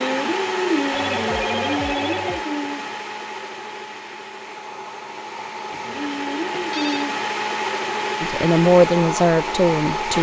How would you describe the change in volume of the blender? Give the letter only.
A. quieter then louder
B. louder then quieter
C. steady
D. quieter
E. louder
A.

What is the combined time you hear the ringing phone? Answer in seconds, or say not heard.
3 s.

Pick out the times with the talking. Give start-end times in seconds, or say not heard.
8.2-10.1.